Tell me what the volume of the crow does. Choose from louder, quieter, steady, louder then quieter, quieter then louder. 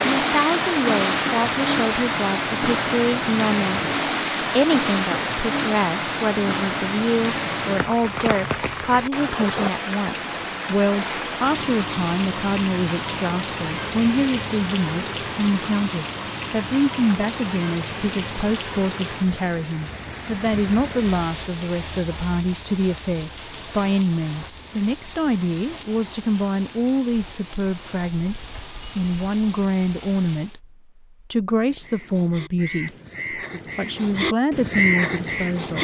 louder.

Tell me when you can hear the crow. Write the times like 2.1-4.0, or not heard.
31.6-35.7.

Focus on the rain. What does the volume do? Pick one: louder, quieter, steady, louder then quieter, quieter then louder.
quieter.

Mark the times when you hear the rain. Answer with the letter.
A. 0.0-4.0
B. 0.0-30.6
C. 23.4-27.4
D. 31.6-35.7
B.